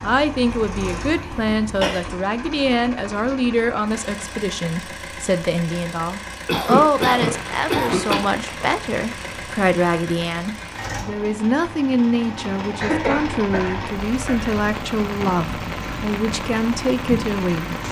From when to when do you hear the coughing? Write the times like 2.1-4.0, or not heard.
0.3-2.0, 6.5-8.2, 12.8-14.7.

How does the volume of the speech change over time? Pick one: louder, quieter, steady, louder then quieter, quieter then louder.
steady.